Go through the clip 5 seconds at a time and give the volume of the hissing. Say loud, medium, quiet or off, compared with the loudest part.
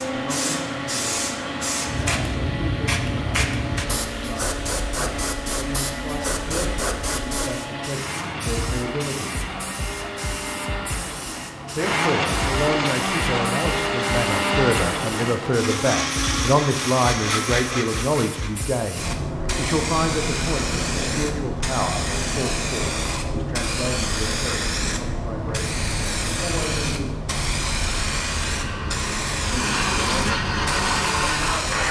loud, medium, medium, medium, loud, loud, loud.